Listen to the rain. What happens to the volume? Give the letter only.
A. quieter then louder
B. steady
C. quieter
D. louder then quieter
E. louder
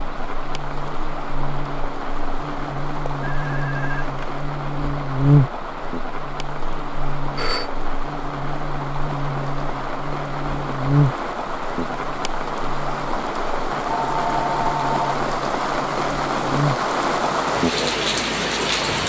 E.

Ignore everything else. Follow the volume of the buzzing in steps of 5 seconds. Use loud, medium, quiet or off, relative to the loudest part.
medium, loud, loud, medium.